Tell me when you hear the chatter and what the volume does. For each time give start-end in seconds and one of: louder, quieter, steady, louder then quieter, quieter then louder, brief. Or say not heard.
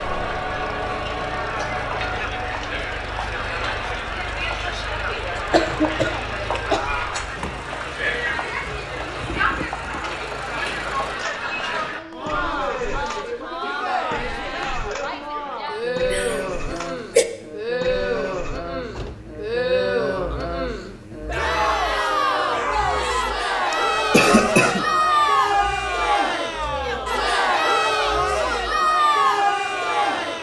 0.0-30.3 louder.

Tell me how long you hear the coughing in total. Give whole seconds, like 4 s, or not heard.
4 s.